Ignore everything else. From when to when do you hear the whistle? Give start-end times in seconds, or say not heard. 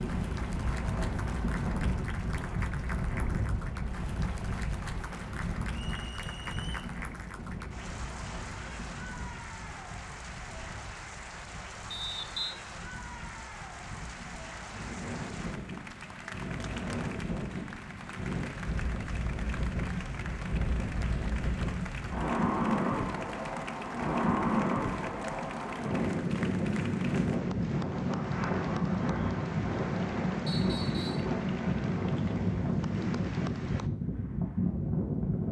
5.8-6.9, 11.9-12.6, 30.4-31.3.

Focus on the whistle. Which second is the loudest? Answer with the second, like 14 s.
12 s.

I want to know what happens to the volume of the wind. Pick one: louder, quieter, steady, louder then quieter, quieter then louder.
quieter then louder.